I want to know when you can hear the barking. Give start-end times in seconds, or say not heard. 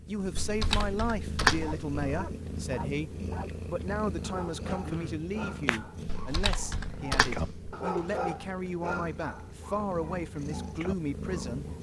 1.4-11.7.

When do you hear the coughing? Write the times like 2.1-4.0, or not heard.
4.7-5.3.